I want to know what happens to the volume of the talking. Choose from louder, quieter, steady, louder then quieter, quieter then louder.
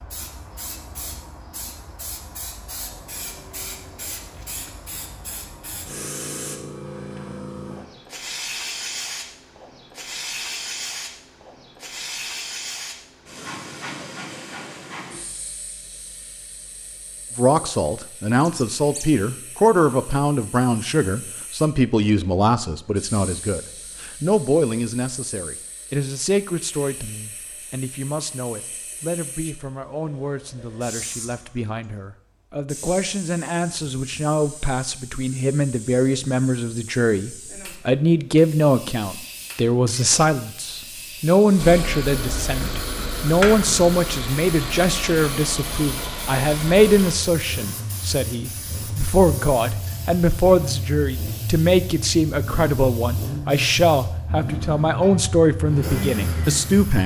quieter then louder.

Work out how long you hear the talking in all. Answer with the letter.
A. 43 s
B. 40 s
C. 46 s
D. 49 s
B.